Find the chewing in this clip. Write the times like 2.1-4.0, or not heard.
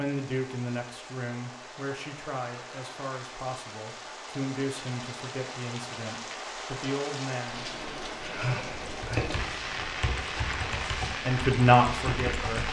not heard.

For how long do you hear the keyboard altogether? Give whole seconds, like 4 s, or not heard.
4 s.